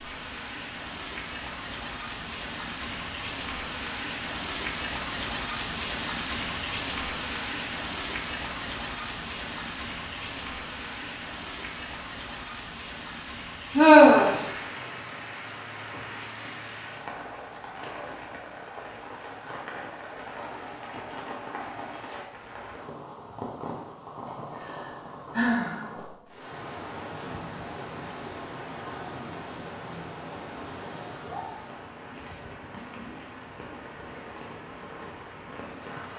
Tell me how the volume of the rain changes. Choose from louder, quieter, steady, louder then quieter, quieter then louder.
quieter.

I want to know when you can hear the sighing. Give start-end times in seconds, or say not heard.
13.8-14.3, 24.6-25.9.